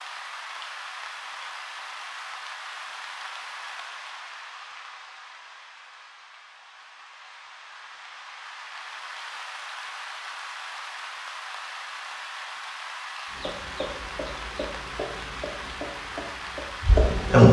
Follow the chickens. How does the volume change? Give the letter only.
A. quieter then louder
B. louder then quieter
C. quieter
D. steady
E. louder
E.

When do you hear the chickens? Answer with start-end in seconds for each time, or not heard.
13.3-17.4.